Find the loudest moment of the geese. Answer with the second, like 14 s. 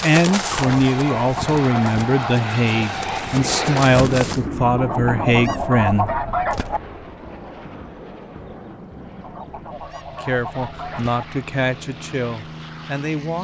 6 s.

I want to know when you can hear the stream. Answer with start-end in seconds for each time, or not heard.
not heard.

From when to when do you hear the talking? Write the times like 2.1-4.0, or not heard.
0.0-6.1, 10.1-13.3.